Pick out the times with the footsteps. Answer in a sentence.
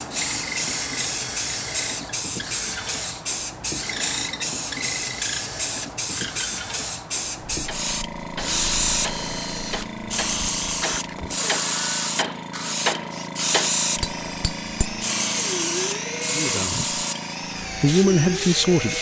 The footsteps can't be heard in this clip.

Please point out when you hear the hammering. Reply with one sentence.
You can hear the hammering from 7.7 to 15.0 s.